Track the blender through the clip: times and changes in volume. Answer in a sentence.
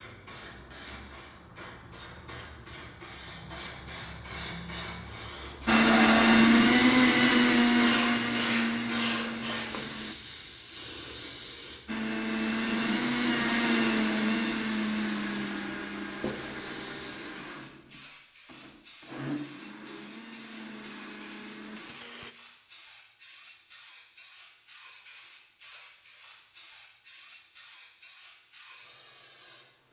You can hear the blender from 5.7 to 10.2 s, getting quieter; and from 11.8 to 22.4 s, getting quieter.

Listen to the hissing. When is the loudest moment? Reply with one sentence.
The volume of the hissing peaks at 8 seconds.